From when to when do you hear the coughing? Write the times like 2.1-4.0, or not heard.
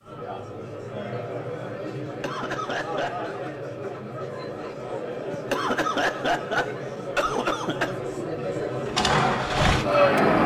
2.0-3.3, 5.3-8.0.